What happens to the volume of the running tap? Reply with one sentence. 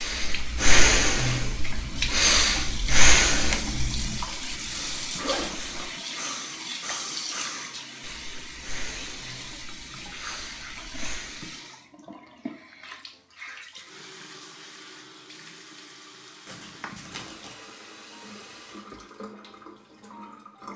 The loudness of the running tap goes down.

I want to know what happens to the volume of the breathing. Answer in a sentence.
The loudness of the breathing goes down.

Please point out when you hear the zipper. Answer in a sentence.
You can hear the zipper from 5.2 to 5.8 s and from 16.4 to 17.6 s.